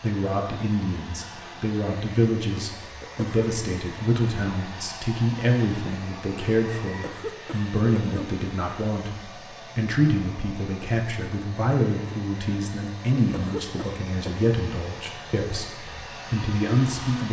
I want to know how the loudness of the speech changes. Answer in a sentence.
The volume of the speech stays about the same.